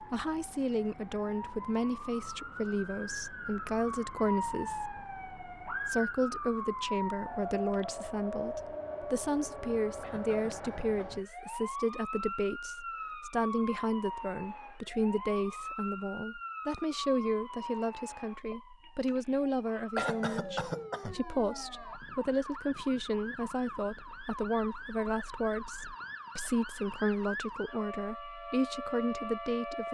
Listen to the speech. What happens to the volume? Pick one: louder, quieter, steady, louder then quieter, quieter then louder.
steady.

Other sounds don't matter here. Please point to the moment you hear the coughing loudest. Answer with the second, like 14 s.
20 s.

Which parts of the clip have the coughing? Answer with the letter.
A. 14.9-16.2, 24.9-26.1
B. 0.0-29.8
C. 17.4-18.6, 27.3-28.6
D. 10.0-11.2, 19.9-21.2
D.